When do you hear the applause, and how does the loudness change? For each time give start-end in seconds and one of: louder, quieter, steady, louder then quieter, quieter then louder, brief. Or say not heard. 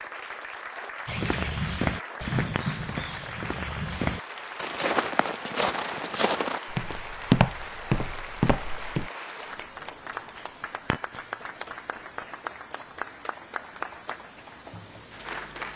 0.0-15.7 steady.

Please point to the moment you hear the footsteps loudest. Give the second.
7 s.